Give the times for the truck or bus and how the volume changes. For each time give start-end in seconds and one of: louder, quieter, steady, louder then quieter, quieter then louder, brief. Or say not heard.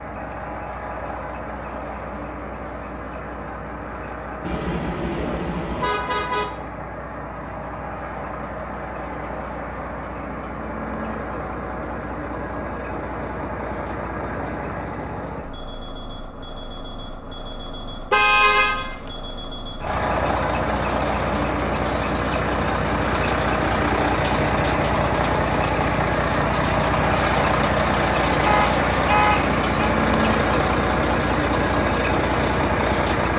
0.0-33.3 louder.